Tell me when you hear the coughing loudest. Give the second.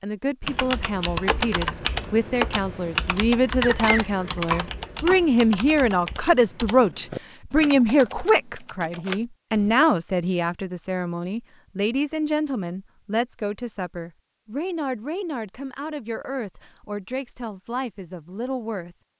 4 s.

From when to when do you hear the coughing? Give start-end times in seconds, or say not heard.
3.6-5.2.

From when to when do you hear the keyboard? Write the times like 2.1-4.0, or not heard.
0.4-9.8.